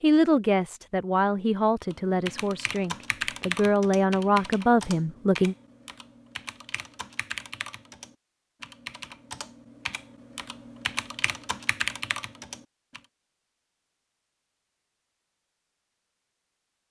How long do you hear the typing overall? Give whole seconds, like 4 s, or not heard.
11 s.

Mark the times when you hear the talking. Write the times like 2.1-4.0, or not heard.
0.0-5.5.